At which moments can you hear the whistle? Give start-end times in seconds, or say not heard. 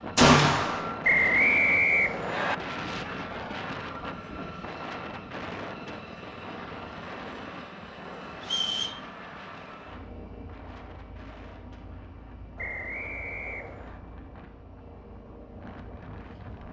1.0-2.5, 8.4-9.0, 12.6-14.0.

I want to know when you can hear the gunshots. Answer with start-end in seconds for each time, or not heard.
0.1-0.8.